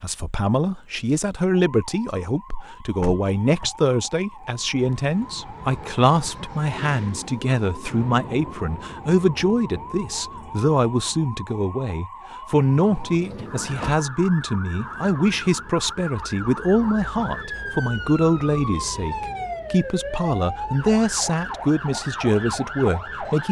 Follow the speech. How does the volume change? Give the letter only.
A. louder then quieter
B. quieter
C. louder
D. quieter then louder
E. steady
E.